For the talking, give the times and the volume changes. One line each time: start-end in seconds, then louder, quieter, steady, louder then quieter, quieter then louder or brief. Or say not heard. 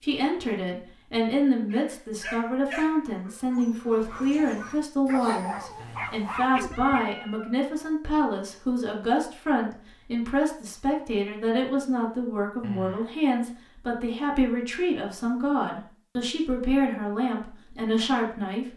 0.0-18.7 steady.